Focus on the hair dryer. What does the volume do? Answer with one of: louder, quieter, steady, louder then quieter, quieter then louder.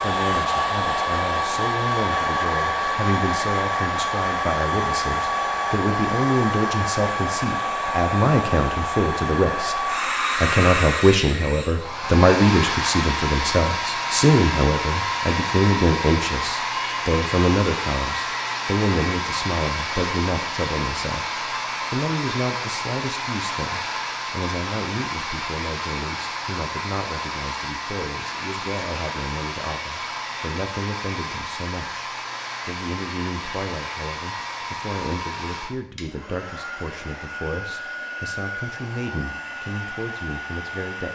quieter.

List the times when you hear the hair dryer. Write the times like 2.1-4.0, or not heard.
0.0-41.0.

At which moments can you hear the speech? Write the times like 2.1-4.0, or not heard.
0.0-41.0.